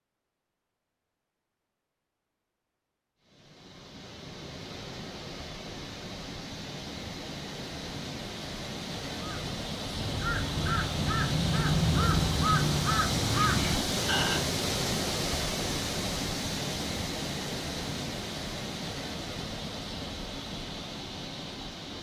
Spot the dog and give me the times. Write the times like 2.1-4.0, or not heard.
not heard.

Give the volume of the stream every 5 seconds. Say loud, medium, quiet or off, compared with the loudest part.
quiet, medium, loud, loud, medium.